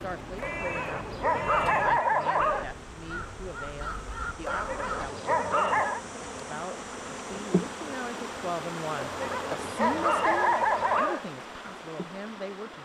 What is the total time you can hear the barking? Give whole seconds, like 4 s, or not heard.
6 s.